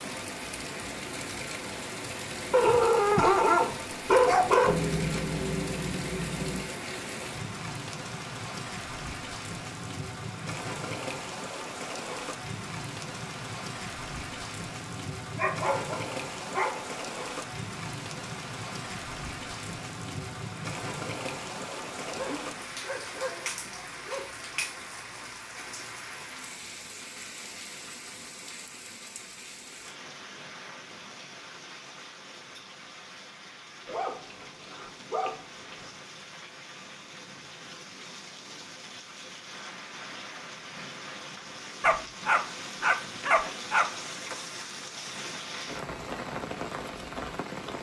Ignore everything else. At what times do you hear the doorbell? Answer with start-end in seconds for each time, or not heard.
not heard.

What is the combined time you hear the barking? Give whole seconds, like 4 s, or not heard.
11 s.